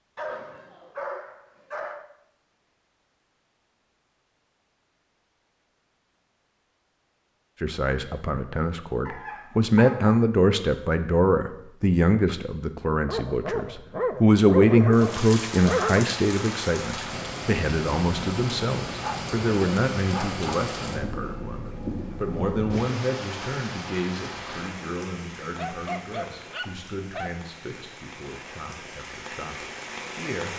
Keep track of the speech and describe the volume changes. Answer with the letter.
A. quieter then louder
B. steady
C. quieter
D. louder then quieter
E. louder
C.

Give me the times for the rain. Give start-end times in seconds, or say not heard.
14.9-30.5.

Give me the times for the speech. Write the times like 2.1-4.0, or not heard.
7.6-30.5.